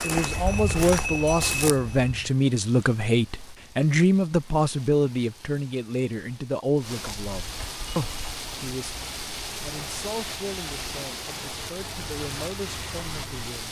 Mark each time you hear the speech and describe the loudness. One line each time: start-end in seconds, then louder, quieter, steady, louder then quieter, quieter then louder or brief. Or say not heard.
0.0-13.6 quieter.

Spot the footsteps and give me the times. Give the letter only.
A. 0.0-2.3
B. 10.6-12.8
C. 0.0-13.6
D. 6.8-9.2
A.